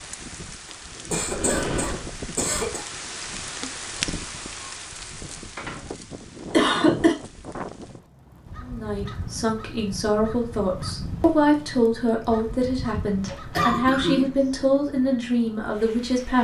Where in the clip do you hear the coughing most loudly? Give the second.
7 s.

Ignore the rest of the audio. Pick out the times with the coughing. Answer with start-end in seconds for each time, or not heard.
1.1-2.9, 6.5-7.2, 13.6-14.4.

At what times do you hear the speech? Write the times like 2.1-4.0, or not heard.
8.6-16.3.